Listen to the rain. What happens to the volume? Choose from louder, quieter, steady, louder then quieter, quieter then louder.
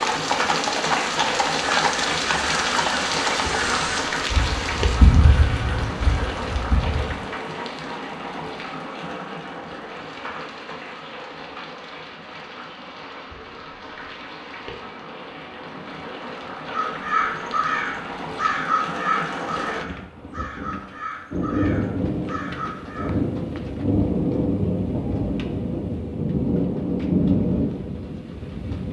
quieter then louder.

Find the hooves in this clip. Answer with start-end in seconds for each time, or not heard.
0.0-3.9.